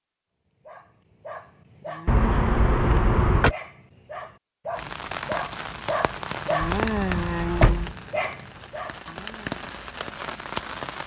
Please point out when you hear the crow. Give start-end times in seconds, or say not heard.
not heard.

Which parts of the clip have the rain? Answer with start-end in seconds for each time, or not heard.
4.7-11.0.